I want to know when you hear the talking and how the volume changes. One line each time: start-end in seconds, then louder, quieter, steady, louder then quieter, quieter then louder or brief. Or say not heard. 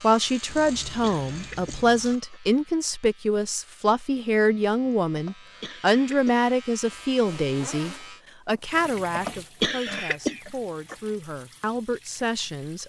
0.0-12.8 quieter.